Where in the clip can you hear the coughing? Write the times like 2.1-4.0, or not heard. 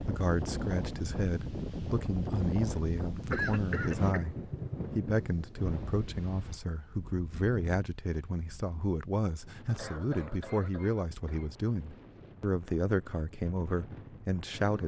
3.3-4.2, 9.7-11.5.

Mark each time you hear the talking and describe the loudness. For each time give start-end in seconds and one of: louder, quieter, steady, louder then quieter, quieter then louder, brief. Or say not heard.
0.1-14.8 steady.